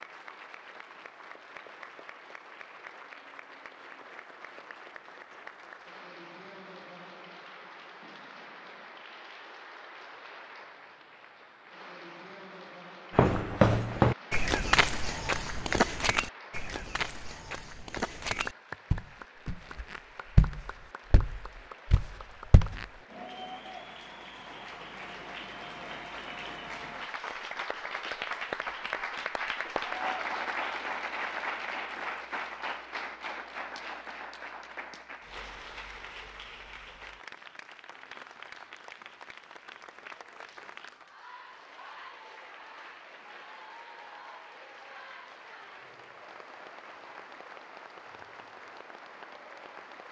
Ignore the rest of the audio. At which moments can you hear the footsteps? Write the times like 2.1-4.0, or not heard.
13.2-22.9.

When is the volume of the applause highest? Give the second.
30 s.